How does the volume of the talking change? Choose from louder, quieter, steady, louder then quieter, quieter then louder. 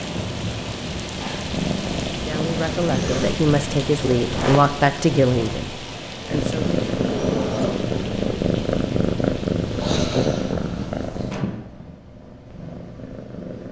louder then quieter.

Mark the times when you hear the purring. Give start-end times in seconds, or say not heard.
0.0-4.6, 6.3-13.6.